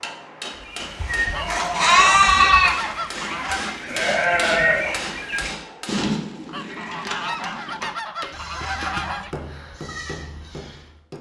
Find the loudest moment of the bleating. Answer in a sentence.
The loudest moment of the bleating is at 2 seconds.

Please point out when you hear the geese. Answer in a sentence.
The geese can be heard from 1.3 to 3.8 s and from 6.5 to 9.3 s.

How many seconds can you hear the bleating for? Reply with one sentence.
The bleating can be heard for 10 seconds in total.